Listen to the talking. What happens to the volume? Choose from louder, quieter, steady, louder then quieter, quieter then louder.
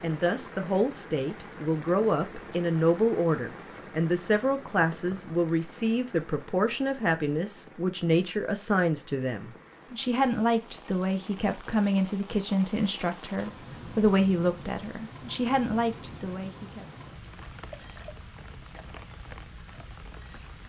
steady.